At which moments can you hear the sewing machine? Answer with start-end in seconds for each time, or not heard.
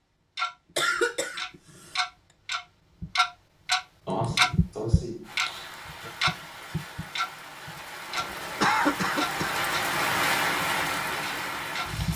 not heard.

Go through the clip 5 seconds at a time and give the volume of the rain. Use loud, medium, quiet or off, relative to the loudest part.
off, medium, loud.